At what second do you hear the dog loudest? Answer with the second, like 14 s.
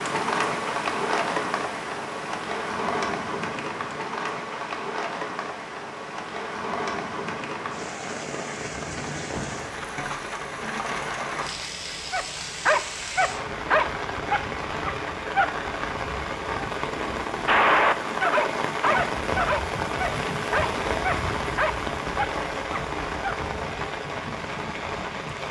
18 s.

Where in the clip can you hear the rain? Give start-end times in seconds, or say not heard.
0.0-25.4.